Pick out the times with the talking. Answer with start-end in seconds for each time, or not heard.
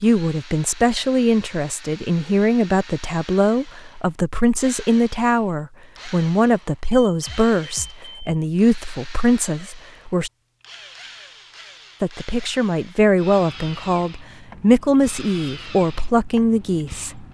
0.0-10.3, 12.0-17.2.